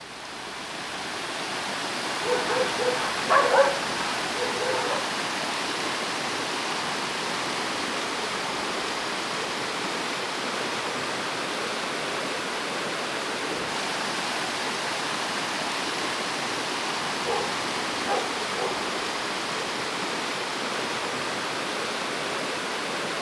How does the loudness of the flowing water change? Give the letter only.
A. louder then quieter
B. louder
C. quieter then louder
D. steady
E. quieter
D.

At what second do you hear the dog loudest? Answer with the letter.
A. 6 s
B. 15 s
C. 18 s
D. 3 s
D.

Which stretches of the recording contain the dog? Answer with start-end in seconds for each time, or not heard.
2.2-5.0, 17.2-18.9.